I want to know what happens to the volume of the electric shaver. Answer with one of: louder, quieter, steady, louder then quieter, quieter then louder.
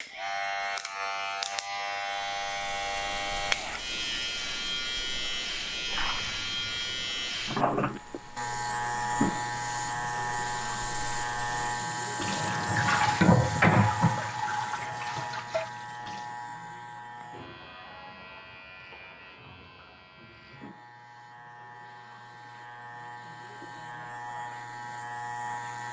quieter.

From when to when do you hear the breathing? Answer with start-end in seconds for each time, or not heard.
not heard.